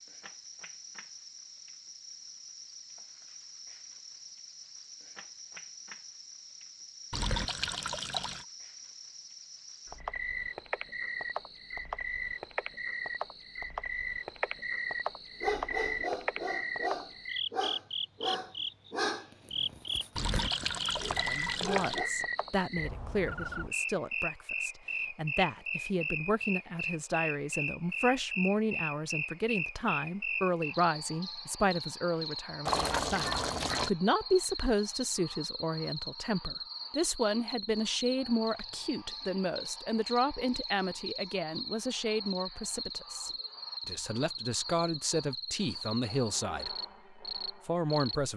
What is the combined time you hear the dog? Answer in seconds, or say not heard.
7 s.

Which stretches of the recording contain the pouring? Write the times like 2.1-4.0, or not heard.
7.1-8.4, 20.1-22.0, 32.6-33.9.